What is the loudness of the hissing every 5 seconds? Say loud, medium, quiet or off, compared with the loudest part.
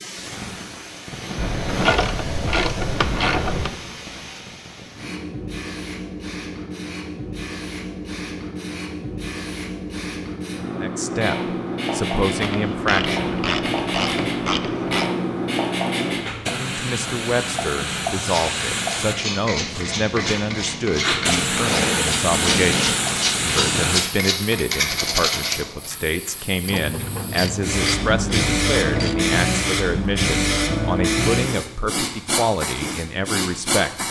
medium, medium, loud, loud, loud, loud, loud.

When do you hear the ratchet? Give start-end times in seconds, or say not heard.
1.4-3.7, 12.4-15.1, 26.6-29.1.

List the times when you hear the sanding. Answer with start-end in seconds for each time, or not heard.
18.2-25.9.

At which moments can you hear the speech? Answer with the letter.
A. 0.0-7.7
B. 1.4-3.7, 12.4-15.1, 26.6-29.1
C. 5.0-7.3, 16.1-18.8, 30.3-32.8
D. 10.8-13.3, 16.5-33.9
D.